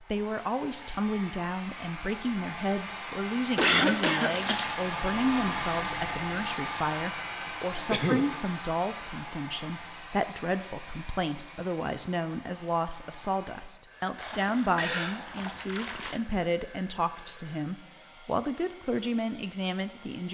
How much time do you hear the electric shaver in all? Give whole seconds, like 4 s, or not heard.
not heard.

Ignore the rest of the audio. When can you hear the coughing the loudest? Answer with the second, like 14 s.
4 s.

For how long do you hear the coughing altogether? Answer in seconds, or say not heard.
2 s.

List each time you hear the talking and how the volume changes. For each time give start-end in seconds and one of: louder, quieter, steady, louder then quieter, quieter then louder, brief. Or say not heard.
0.0-20.2 steady.